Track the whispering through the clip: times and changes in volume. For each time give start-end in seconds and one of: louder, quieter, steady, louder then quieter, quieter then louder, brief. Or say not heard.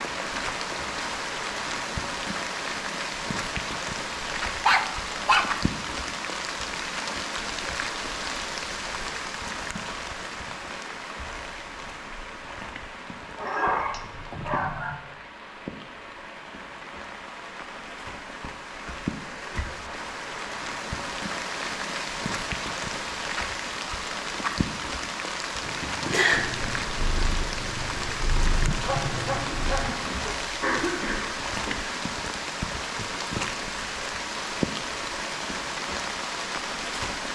not heard.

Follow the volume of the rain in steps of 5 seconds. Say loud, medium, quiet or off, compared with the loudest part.
loud, loud, medium, medium, loud, loud, loud, loud.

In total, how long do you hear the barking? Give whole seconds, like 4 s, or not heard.
4 s.